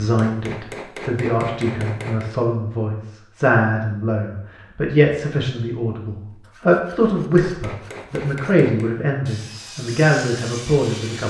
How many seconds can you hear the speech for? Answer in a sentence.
The speech can be heard for 11 seconds in total.